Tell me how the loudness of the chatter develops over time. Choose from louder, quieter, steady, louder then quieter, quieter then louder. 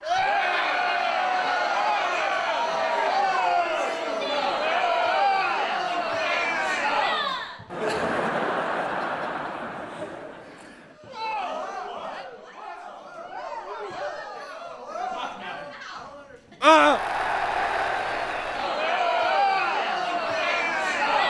quieter then louder.